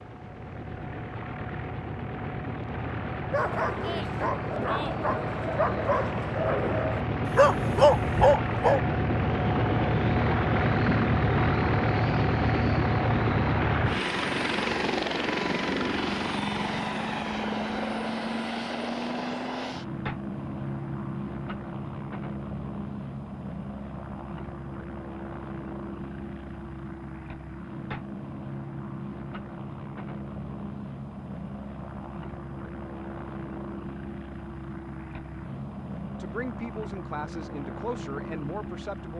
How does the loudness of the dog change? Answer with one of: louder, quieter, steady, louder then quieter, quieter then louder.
louder.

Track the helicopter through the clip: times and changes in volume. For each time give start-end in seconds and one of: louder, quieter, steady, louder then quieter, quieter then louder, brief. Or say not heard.
0.0-39.1 louder then quieter.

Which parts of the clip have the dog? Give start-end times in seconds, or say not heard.
3.3-8.8.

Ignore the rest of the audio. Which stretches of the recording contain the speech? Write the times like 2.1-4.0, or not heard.
36.2-39.1.